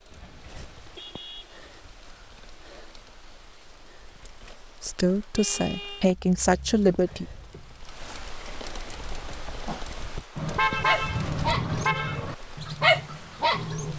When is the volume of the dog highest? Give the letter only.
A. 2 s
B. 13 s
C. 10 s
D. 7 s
B.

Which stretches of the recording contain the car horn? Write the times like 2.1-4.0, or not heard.
0.1-1.9, 5.3-6.0, 10.3-12.3.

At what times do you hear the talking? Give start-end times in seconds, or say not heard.
4.8-7.2.